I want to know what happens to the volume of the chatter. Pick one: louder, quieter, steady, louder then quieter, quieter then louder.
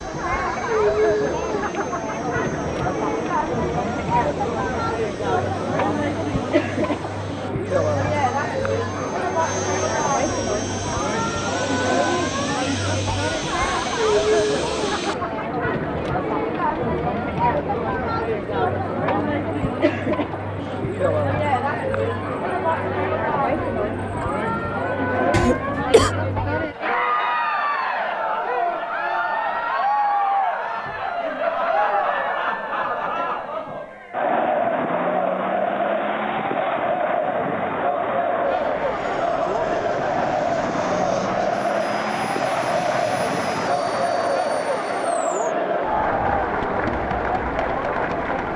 steady.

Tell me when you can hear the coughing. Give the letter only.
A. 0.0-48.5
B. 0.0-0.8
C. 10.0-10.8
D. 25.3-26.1
D.